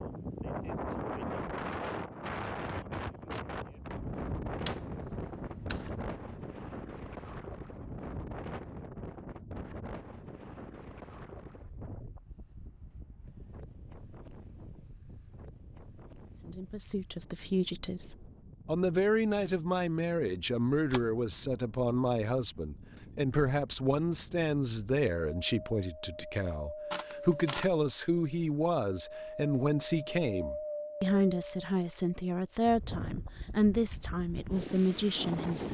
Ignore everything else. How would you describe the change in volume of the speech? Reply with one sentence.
The volume of the speech stays about the same.